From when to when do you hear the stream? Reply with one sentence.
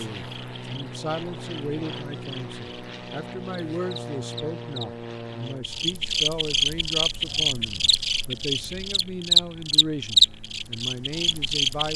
You can't hear the stream here.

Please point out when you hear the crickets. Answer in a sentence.
The crickets can be heard from 0.1 to 11.9 s.